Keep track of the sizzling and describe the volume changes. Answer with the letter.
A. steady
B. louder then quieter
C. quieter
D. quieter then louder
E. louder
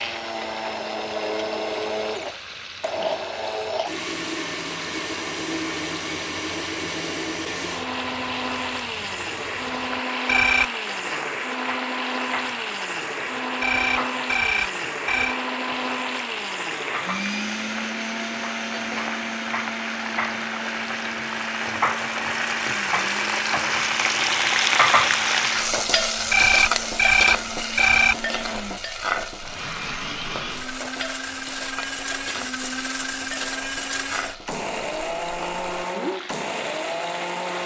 B.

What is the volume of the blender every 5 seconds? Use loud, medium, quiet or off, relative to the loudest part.
loud, loud, loud, loud, medium, medium, loud, loud.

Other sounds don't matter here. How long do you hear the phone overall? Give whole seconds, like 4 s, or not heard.
4 s.